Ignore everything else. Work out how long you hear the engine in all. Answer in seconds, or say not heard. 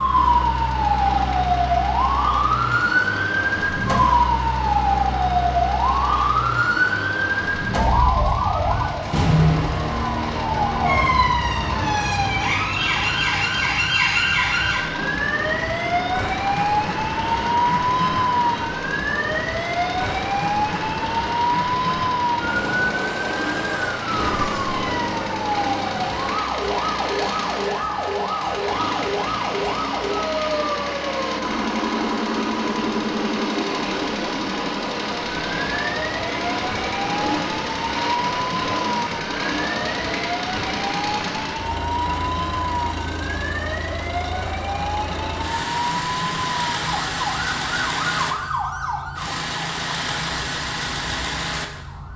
52 s.